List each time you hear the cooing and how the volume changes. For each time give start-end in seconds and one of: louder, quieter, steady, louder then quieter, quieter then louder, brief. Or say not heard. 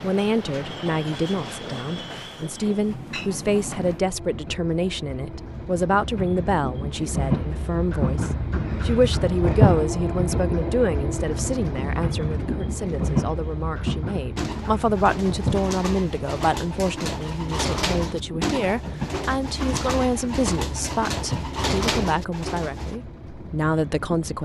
14.3-23.0 louder.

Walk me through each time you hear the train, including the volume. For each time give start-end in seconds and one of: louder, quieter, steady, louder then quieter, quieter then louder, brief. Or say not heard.
0.0-24.3 louder then quieter.